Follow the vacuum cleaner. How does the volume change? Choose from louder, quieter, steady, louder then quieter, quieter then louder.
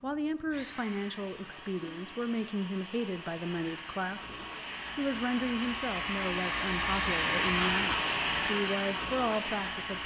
louder.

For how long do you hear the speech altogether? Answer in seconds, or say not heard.
10 s.